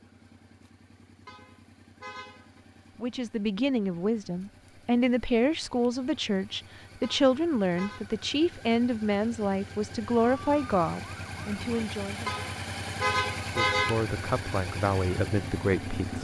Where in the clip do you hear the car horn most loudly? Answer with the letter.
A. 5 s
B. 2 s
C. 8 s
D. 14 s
D.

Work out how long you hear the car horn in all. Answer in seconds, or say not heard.
4 s.